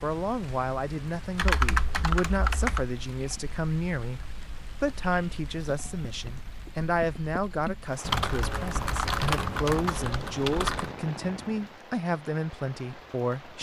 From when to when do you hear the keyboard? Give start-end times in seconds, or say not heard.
1.4-2.9, 8.0-10.9.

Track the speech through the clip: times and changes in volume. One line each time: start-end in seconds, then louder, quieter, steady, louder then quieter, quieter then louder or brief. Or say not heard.
0.0-13.5 steady.